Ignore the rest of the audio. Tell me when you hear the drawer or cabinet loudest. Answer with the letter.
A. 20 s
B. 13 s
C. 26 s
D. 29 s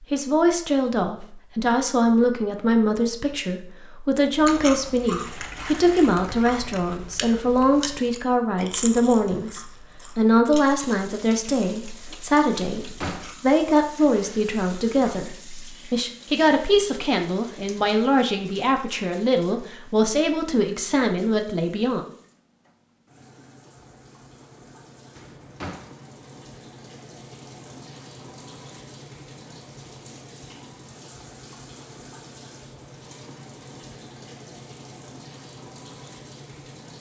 B.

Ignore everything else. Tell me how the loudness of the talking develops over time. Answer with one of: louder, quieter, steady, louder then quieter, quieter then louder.
steady.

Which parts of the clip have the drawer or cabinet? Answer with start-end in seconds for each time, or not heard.
12.8-13.3, 25.1-25.9.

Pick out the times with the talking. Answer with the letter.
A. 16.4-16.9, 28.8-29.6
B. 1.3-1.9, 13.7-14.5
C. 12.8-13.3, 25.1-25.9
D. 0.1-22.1
D.